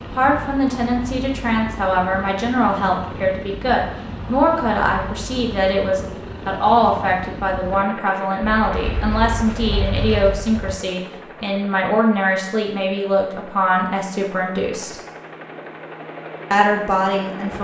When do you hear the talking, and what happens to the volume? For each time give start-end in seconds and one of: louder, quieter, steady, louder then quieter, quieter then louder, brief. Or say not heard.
0.0-14.9 steady
16.5-17.5 brief.